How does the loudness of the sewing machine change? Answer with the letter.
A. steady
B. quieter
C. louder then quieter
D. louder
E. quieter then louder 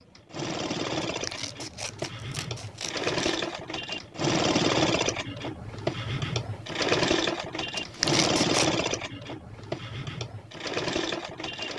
C.